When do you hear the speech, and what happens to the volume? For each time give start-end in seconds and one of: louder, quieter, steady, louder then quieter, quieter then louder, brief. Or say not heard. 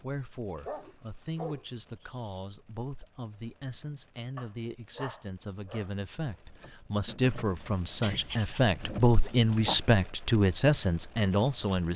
0.0-11.9 louder.